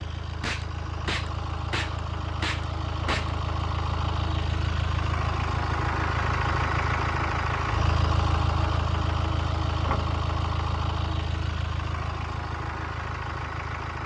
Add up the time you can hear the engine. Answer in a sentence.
You can hear the engine for 14 seconds altogether.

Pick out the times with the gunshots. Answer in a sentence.
You can hear the gunshots from 0.4 to 3.4 s.